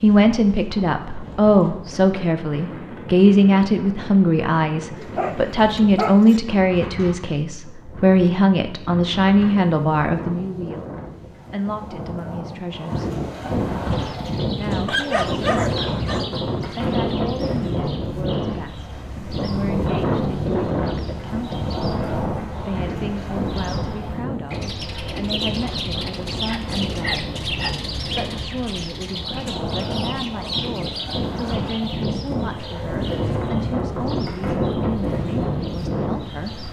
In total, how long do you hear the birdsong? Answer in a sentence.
The birdsong can be heard for 23 seconds in total.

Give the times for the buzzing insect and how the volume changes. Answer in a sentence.
The buzzing insect can't be heard in this clip.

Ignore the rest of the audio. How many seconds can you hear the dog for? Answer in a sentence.
You can hear the dog for 4 seconds altogether.